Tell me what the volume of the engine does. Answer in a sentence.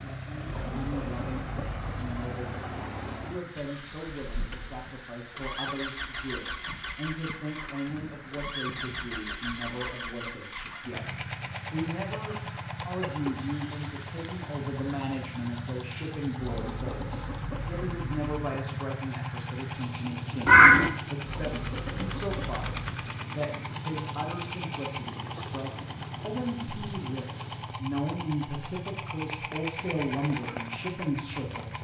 The volume of the engine stays about the same.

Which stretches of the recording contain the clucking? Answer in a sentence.
You can hear the clucking from 0.5 to 2.1 s, from 16.4 to 18.4 s and from 21.2 to 23.0 s.